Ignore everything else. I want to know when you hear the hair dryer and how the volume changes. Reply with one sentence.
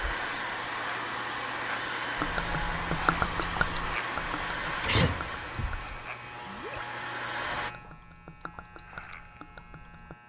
The hair dryer can be heard from 0.0 to 7.8 s, getting quieter.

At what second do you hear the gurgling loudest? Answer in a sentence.
The loudest moment of the gurgling is at 3 seconds.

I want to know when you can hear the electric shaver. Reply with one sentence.
The electric shaver can be heard from 0.0 to 10.2 s.